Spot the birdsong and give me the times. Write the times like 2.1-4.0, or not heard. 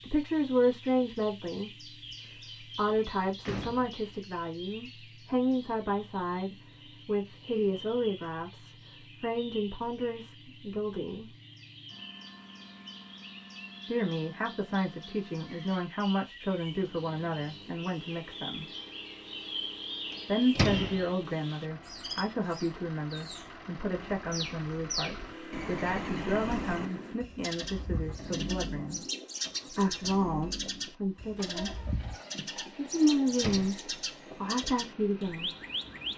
0.0-36.1.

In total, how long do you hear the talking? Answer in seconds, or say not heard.
29 s.